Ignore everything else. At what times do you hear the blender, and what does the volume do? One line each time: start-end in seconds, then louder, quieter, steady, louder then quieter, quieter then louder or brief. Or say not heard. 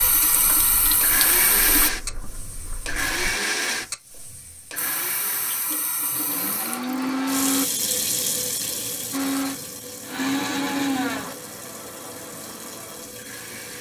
0.0-7.7 quieter then louder
9.1-13.7 louder then quieter.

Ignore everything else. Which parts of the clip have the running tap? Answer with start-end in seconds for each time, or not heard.
0.0-1.9, 4.8-13.7.